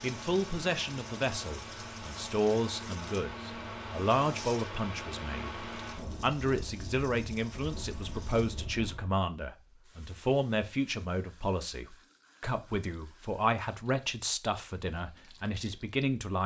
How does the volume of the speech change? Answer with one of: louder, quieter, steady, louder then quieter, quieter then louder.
steady.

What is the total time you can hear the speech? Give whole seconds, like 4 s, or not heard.
16 s.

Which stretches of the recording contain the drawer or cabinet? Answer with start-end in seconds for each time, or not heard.
not heard.